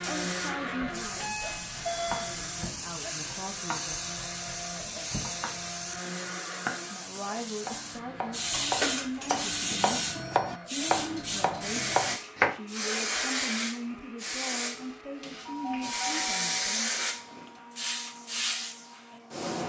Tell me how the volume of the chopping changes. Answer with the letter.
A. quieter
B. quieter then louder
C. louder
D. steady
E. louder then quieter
C.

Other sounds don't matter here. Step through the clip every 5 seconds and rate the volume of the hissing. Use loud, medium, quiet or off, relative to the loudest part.
medium, loud, loud, loud.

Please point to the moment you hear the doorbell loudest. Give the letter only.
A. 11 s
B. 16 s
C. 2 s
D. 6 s
C.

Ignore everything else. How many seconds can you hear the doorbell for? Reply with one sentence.
The doorbell can be heard for 4 seconds in total.